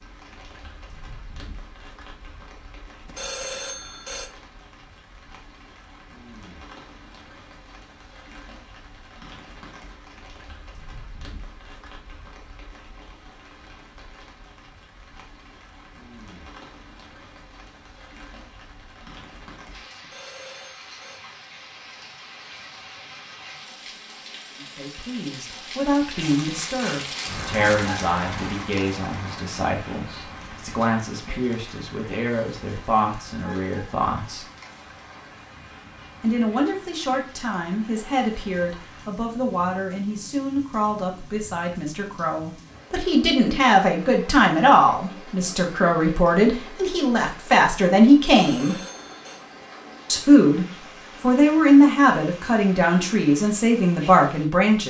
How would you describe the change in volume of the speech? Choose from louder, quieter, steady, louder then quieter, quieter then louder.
louder.